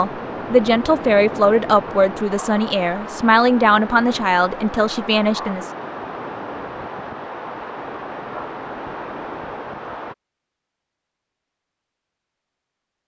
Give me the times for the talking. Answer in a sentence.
The talking can be heard from 0.0 to 5.7 s.